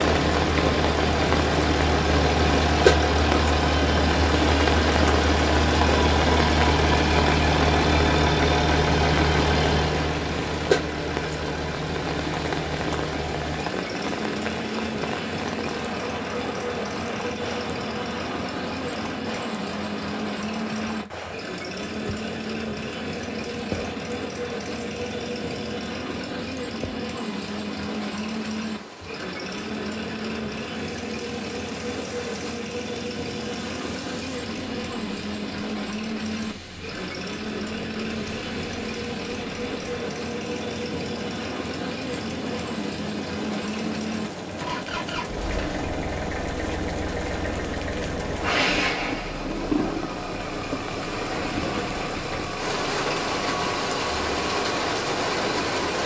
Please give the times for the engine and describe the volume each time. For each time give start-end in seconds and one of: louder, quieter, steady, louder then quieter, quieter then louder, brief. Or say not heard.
0.0-55.9 quieter.